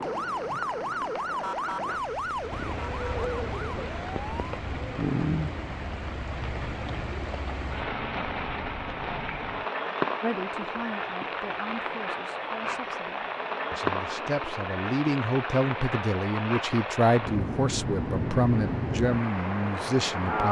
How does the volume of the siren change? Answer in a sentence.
The loudness of the siren goes down.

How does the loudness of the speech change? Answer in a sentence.
The loudness of the speech goes up.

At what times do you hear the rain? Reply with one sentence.
The rain can be heard from 0.0 to 20.4 s.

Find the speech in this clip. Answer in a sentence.
You can hear the speech from 10.2 to 20.4 s.